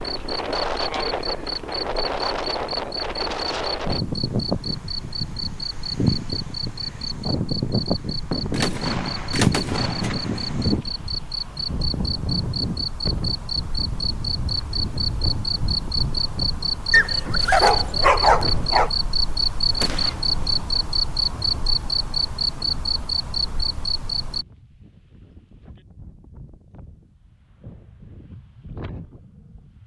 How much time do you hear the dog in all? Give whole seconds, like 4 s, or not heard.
2 s.